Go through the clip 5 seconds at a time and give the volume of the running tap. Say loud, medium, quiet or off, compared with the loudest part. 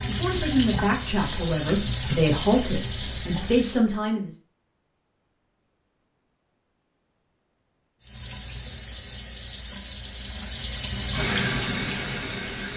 loud, medium, loud.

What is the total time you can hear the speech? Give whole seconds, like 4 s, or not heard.
4 s.